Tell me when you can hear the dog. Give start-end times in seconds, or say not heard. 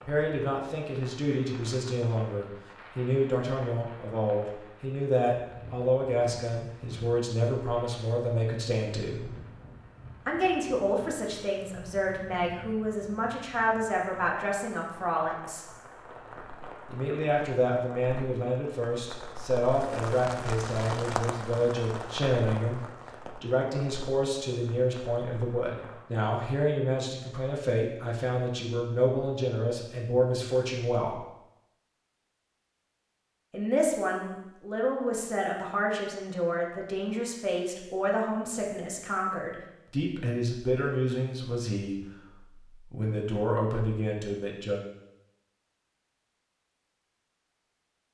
not heard.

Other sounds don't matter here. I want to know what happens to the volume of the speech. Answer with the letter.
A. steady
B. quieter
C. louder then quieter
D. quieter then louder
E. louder
A.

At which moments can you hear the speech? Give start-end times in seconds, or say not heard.
0.1-9.3, 10.2-15.7, 16.9-31.2, 33.5-44.8.